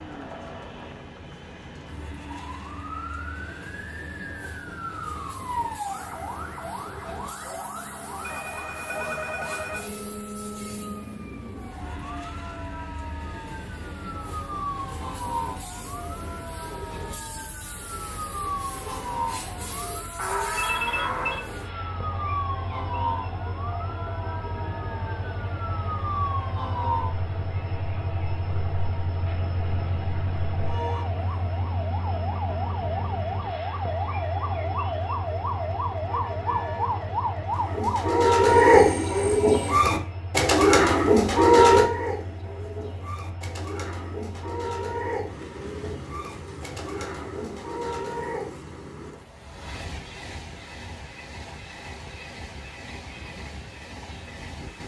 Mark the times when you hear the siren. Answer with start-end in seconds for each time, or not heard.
2.2-38.2.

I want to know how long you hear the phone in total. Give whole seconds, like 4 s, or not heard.
4 s.